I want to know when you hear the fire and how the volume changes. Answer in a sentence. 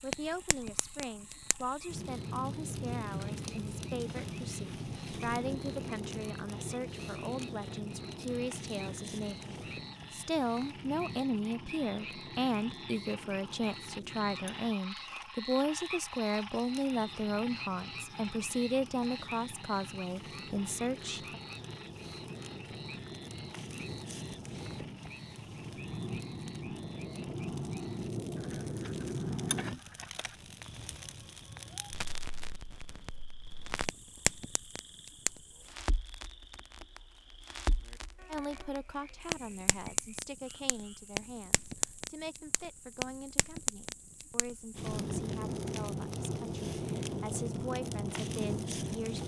The fire can be heard from 0.0 to 49.2 s, getting quieter then louder.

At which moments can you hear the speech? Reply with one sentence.
The speech can be heard from 0.0 to 21.4 s and from 38.2 to 49.2 s.